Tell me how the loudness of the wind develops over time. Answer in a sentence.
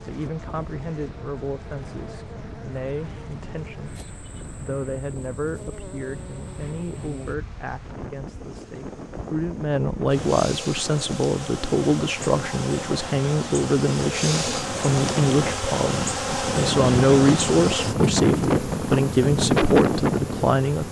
The volume of the wind goes up.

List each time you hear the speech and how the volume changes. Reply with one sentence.
You can hear the speech from 0.0 to 20.8 s, getting louder.